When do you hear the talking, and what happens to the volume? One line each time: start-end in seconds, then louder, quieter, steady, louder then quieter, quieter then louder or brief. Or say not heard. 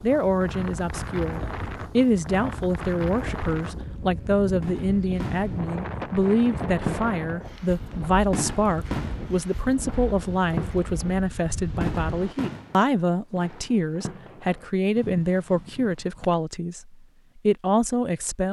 0.0-18.4 steady.